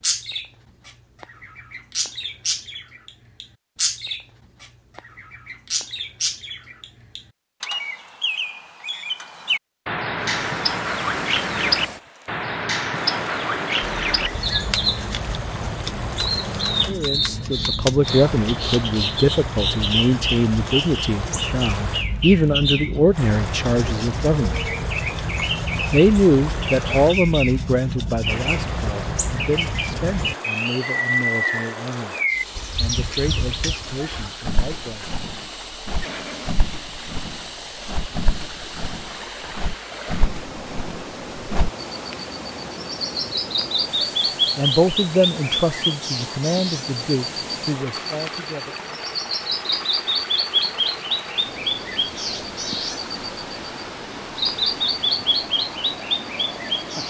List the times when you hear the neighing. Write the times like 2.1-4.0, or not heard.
13.8-14.6, 36.0-36.5.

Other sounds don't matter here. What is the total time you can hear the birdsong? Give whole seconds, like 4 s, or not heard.
57 s.